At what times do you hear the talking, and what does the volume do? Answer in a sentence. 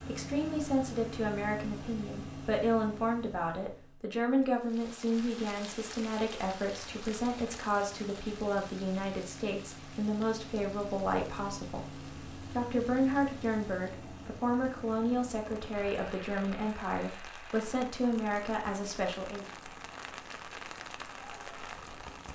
You can hear the talking from 0.0 to 19.4 s, at a steady volume.